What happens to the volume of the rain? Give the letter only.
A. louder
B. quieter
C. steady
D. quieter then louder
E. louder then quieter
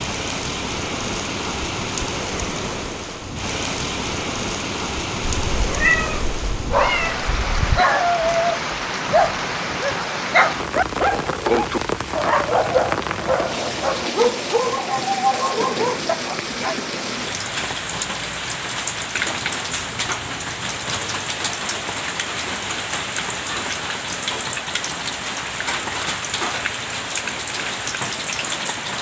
C.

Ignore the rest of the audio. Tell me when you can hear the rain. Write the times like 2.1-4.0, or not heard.
0.0-28.9.